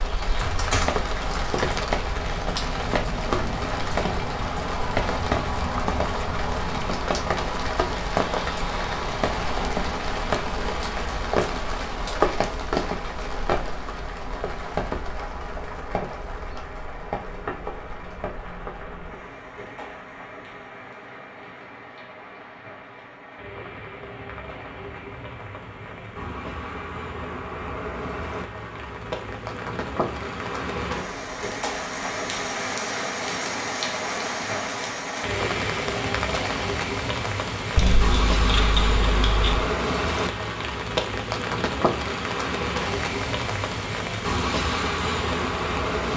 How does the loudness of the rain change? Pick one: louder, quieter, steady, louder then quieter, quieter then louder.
quieter then louder.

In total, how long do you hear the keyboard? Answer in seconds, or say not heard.
3 s.